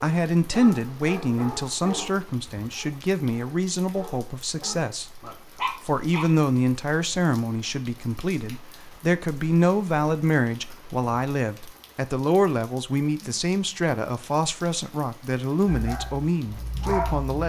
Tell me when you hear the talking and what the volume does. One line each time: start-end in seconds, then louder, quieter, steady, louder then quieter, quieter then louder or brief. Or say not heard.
0.0-17.4 steady.